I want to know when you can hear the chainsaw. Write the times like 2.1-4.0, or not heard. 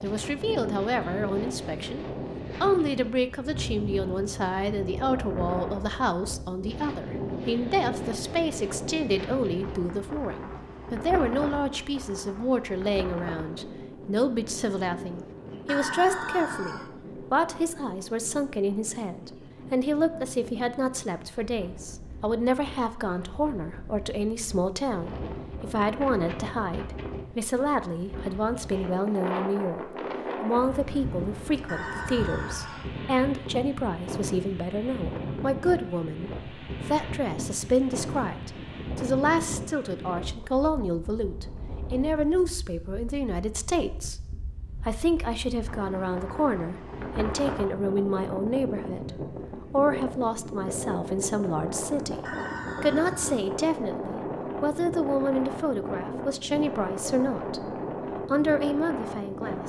not heard.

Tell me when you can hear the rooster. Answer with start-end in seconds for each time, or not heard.
15.7-16.9, 31.6-32.9, 52.2-53.5.